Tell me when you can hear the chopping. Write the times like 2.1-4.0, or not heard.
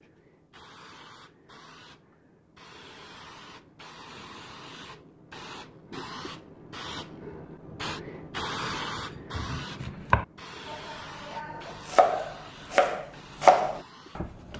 8.8-14.5.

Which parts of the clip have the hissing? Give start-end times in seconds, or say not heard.
0.0-14.5.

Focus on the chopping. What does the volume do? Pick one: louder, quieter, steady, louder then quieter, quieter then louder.
quieter then louder.